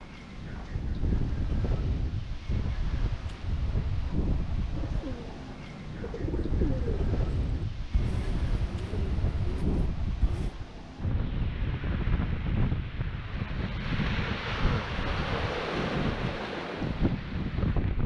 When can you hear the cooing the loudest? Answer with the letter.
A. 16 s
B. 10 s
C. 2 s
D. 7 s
D.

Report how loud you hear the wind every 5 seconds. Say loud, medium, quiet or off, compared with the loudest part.
medium, medium, loud, loud.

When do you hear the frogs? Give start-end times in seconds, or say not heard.
not heard.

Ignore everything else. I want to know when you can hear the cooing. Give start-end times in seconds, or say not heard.
4.7-10.6.